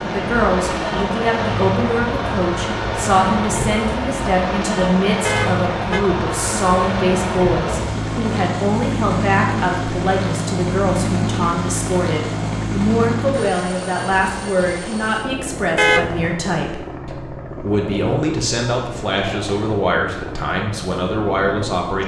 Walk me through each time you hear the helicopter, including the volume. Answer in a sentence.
The helicopter can be heard from 0.0 to 22.0 s, getting quieter.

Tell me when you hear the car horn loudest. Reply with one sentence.
The volume of the car horn peaks at 16 seconds.